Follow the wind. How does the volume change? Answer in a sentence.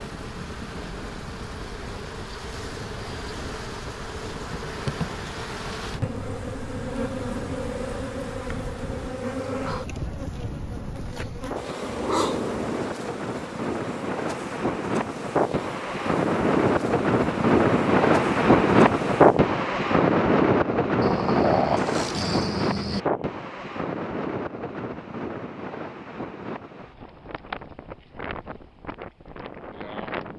The loudness of the wind goes up, then down.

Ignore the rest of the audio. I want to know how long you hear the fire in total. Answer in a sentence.
The fire can't be heard in this clip.